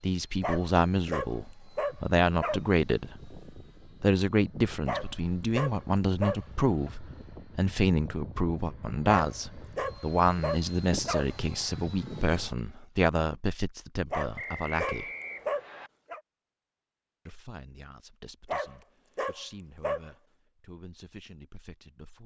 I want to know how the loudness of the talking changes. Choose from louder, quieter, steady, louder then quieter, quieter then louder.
quieter.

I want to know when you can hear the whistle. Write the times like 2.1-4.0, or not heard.
14.3-15.9.